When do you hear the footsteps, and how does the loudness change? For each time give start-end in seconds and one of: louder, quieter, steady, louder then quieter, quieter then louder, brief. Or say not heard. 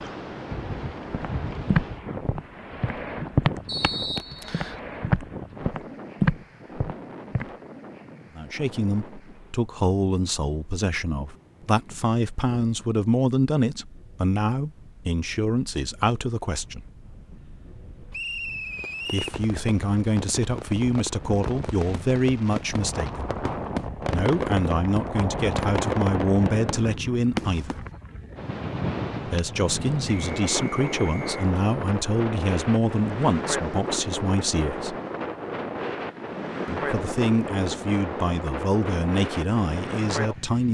1.1-7.5 quieter then louder.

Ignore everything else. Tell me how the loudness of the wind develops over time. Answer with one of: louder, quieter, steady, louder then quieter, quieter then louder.
quieter then louder.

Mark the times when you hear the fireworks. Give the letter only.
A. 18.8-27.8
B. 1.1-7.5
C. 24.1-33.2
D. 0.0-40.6
A.